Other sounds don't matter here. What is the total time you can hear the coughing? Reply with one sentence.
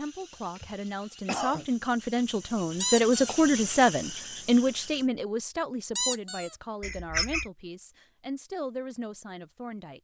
You can hear the coughing for 2 seconds altogether.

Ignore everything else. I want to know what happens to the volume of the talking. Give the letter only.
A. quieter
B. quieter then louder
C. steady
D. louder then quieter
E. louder
D.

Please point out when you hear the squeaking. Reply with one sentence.
You can hear the squeaking from 2.8 to 3.4 s and from 6.0 to 6.5 s.